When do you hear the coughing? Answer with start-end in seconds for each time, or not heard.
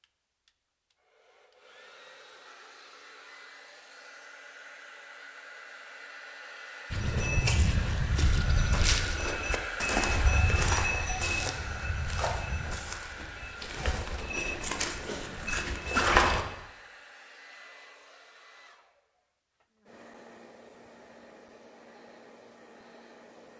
not heard.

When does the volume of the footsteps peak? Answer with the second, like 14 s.
16 s.